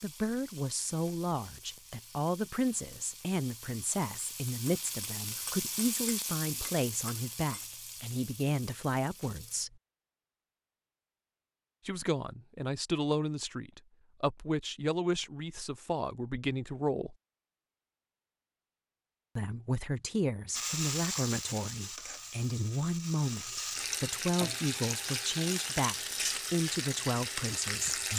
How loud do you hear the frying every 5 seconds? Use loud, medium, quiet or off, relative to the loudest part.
quiet, medium, off, off, loud, loud.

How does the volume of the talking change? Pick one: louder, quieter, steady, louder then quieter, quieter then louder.
steady.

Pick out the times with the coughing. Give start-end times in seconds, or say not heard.
not heard.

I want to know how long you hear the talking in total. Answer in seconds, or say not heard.
24 s.